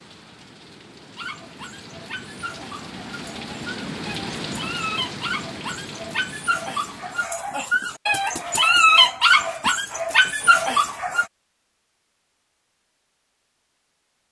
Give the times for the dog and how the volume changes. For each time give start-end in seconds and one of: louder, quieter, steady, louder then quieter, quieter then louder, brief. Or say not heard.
1.1-11.2 louder.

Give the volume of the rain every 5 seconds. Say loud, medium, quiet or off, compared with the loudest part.
loud, loud, off.